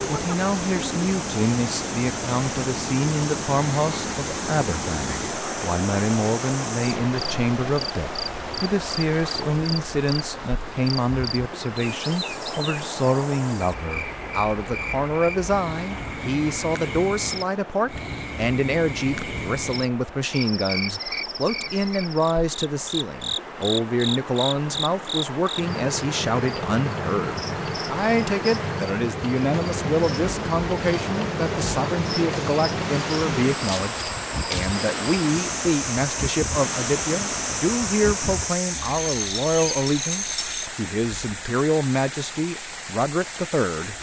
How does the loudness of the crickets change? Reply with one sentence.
The loudness of the crickets goes up.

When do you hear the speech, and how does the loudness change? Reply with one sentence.
The speech can be heard from 0.1 to 43.9 s, at a steady volume.